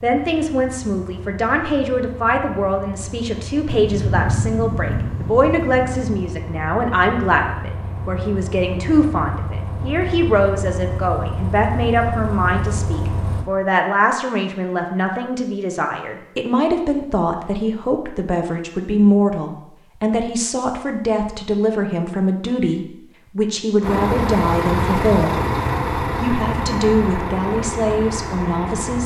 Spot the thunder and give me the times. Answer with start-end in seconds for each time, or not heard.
3.6-6.2.